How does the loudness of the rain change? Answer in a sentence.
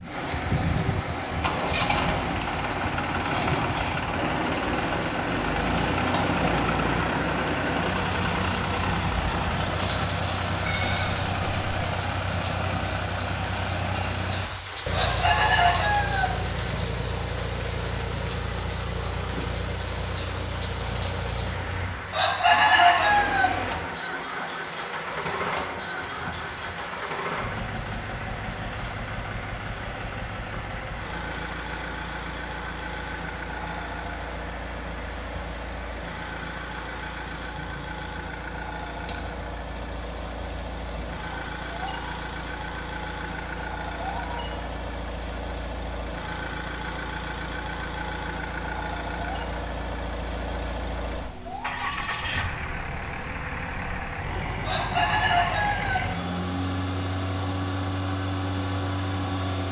The volume of the rain goes down.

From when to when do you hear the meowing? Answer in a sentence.
The meowing can be heard from 10.7 to 11.7 s.